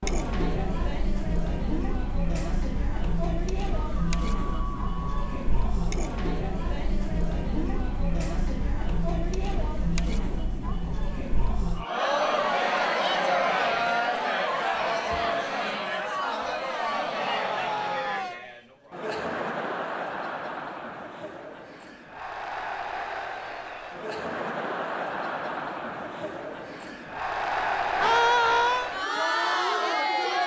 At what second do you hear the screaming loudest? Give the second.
28 s.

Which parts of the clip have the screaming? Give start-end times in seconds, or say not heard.
3.8-5.3, 17.1-18.4, 28.0-28.9.